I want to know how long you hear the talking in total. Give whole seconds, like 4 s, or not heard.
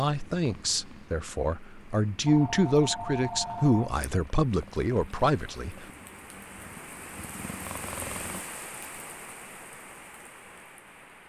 6 s.